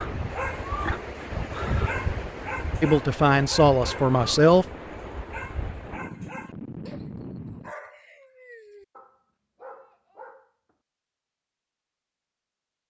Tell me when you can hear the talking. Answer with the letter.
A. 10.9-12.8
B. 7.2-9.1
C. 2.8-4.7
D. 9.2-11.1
C.